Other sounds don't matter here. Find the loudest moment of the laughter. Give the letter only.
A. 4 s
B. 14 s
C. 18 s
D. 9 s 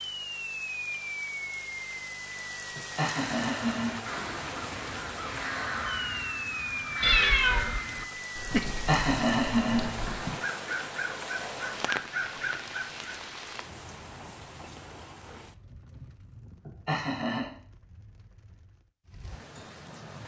D.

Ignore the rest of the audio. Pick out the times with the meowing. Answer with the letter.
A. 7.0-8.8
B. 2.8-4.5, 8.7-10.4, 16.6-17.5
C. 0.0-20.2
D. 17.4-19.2
A.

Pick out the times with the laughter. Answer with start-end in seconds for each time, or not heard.
2.8-4.5, 8.7-10.4, 16.6-17.5.